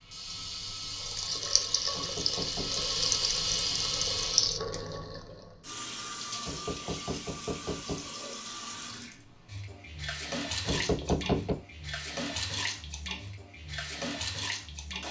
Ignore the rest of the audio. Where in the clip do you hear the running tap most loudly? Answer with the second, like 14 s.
4 s.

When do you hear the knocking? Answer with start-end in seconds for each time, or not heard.
1.9-2.9, 6.5-8.3, 10.7-11.6.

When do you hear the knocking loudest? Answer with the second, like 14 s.
11 s.